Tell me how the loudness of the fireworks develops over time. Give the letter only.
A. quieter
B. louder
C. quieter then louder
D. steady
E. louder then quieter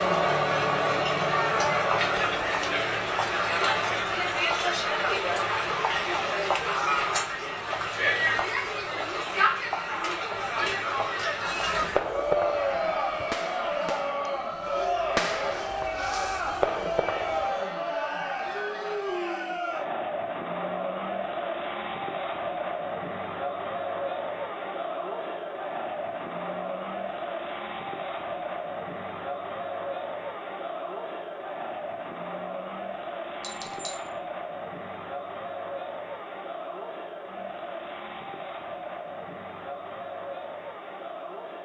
C.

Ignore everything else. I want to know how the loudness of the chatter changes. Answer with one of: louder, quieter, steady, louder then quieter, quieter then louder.
quieter.